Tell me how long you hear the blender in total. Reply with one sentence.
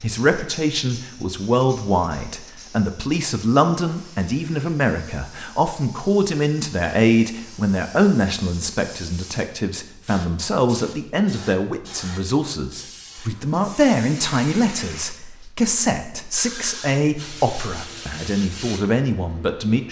You can't hear the blender here.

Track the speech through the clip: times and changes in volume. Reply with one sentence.
You can hear the speech from 0.0 to 19.8 s, at a steady volume.